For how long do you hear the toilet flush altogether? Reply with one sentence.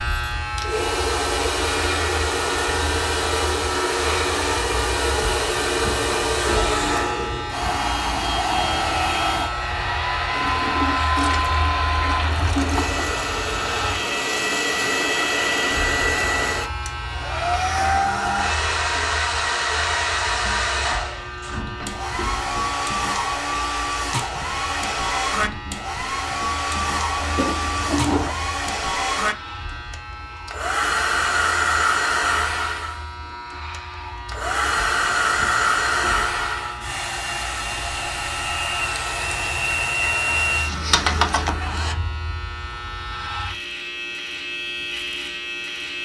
The toilet flush can be heard for 4 seconds in total.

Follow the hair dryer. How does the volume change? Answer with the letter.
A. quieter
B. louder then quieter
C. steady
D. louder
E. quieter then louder
C.